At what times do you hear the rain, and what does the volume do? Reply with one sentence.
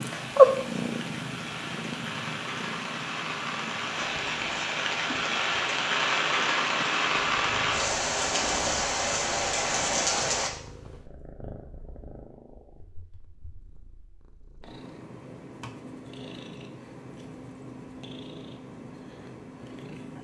The rain can be heard from 0.0 to 10.5 s, getting louder.